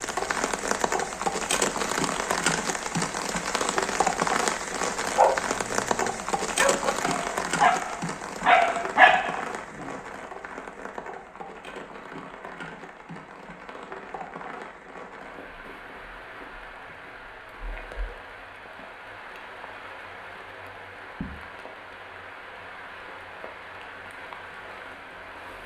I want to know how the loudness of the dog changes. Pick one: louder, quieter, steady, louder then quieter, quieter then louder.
louder.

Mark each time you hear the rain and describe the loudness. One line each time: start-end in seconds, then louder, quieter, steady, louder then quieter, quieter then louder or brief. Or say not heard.
0.0-25.6 quieter.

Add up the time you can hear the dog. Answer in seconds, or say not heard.
5 s.